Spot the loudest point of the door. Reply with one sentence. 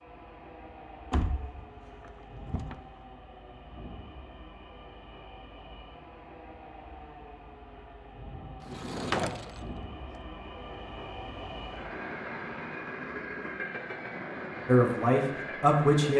The volume of the door peaks at 9 seconds.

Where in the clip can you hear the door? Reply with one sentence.
You can hear the door from 1.1 to 2.8 s and from 8.6 to 9.7 s.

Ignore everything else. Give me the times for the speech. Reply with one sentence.
You can hear the speech from 14.7 to 16.1 s.